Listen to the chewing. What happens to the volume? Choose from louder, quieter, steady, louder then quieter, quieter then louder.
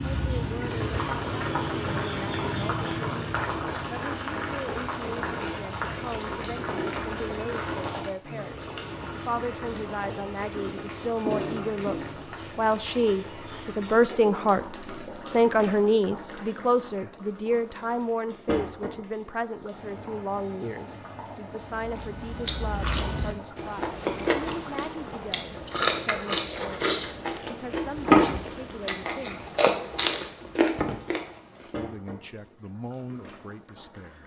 louder.